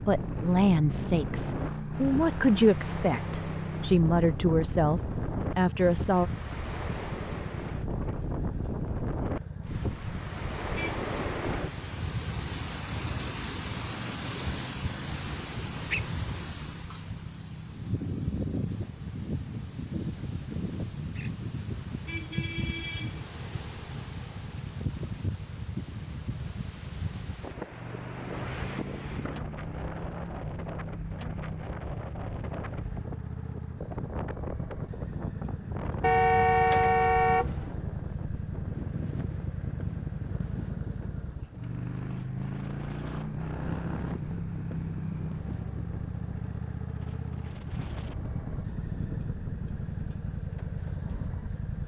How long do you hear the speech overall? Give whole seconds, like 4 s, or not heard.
6 s.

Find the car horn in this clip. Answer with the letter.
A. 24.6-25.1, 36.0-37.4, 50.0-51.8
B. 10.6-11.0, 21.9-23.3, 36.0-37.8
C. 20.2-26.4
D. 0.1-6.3
B.